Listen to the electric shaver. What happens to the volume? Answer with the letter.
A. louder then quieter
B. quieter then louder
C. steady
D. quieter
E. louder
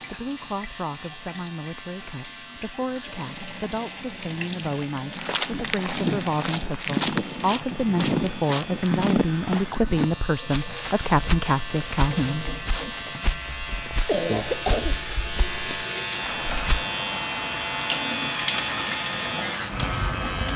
E.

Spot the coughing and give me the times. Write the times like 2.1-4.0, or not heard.
13.1-15.0.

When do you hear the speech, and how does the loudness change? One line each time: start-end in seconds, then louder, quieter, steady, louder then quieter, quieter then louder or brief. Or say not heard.
0.1-12.9 louder.